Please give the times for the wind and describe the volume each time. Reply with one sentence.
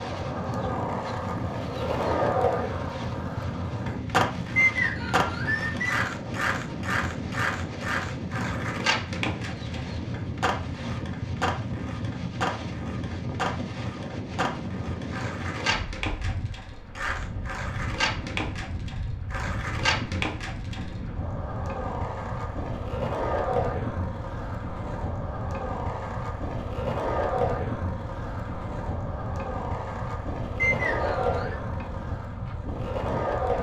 The wind can be heard from 0.0 to 33.5 s, at a steady volume.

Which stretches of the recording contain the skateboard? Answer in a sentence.
You can hear the skateboard from 0.0 to 33.5 s.